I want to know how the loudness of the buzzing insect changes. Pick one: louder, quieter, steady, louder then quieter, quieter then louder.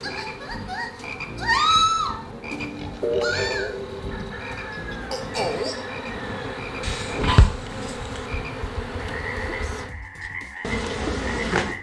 louder.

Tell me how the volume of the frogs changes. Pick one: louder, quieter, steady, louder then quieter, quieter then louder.
quieter.